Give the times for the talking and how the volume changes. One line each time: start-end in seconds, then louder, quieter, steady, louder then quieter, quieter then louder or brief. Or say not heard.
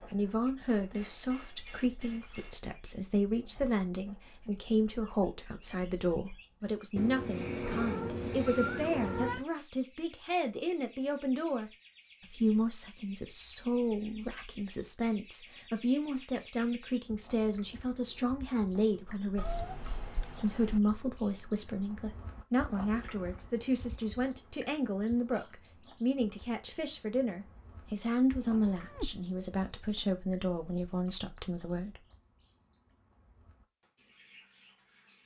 0.1-11.7 steady
12.3-32.0 steady.